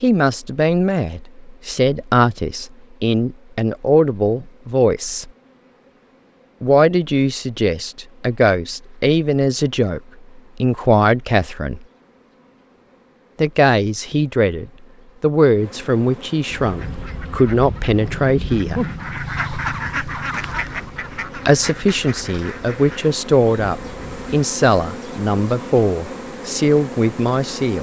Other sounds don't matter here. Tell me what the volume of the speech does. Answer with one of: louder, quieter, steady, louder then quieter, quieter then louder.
steady.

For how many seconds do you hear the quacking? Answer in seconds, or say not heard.
8 s.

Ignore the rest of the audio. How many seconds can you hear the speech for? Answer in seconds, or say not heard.
22 s.